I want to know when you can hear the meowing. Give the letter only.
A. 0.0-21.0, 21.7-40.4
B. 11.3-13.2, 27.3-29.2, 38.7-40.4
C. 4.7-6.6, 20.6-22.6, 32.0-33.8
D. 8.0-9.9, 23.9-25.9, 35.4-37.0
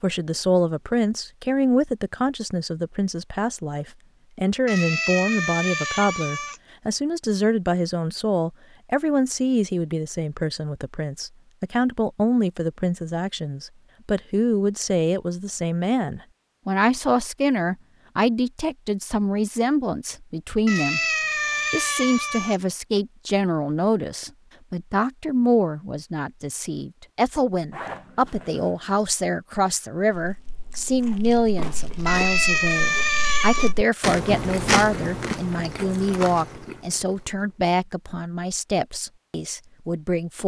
C.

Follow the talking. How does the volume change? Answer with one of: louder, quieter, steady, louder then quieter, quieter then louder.
steady.